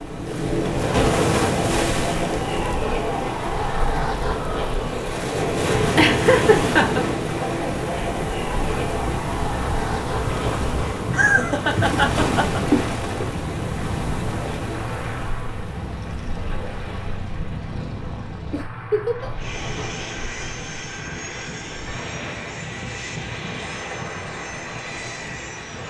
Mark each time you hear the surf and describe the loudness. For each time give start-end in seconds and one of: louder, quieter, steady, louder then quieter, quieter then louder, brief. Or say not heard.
0.0-25.8 quieter.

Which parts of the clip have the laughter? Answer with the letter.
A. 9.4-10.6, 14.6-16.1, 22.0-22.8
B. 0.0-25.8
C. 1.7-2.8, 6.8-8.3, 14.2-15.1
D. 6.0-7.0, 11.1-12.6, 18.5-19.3
D.